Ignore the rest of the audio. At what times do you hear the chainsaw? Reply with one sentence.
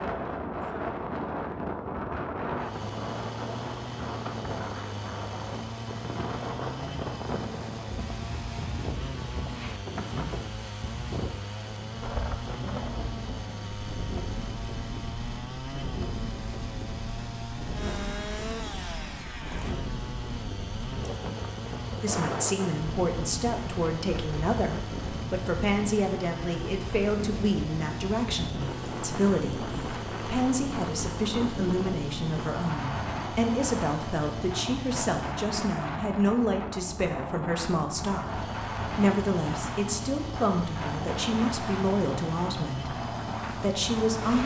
You can hear the chainsaw from 2.5 to 35.5 s and from 38.1 to 44.4 s.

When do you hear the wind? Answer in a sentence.
You can hear the wind from 0.0 to 44.4 s.